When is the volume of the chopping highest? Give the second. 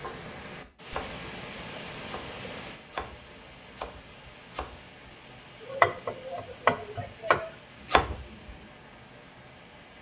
6 s.